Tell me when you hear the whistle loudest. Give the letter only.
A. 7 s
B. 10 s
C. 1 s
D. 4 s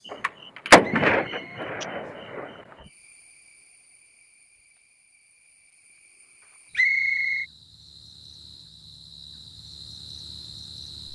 A.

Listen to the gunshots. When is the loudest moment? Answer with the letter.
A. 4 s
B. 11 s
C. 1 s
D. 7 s
C.